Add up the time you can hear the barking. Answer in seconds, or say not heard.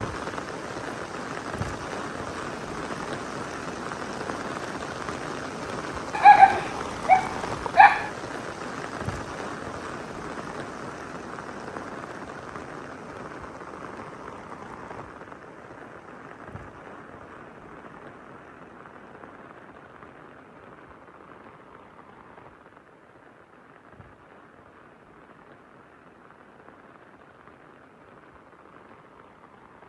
2 s.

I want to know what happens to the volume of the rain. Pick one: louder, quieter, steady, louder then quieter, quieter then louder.
quieter.